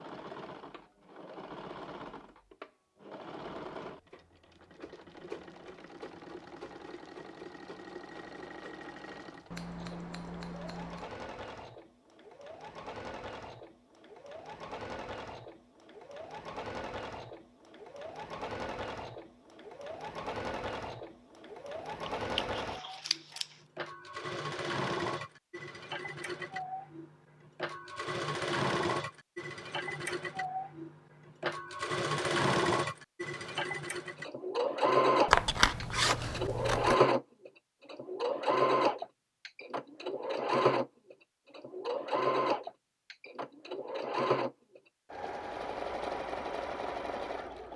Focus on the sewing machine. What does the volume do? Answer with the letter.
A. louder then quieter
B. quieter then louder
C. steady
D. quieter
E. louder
E.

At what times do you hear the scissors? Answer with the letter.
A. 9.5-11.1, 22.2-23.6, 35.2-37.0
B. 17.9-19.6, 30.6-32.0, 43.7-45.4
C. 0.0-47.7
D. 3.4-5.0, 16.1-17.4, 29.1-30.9
A.